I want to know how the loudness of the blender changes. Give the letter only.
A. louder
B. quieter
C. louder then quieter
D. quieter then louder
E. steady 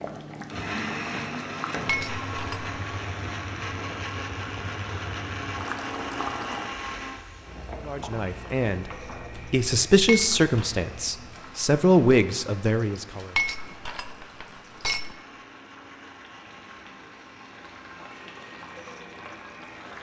B.